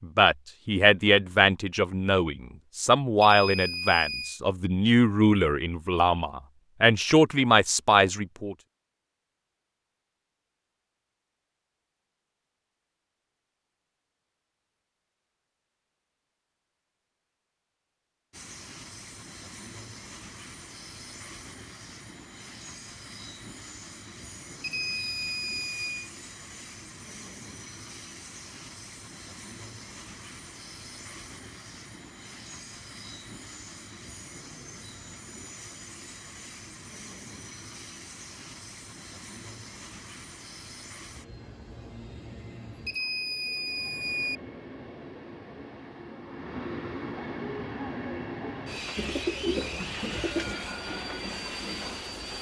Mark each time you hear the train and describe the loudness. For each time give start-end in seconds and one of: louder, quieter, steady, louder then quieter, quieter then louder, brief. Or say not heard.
18.3-52.3 louder.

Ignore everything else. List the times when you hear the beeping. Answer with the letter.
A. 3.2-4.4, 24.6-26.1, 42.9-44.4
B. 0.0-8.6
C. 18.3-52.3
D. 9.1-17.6
A.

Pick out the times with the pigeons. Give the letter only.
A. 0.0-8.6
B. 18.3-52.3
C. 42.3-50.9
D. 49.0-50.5
D.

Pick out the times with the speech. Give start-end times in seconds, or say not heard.
0.0-8.6.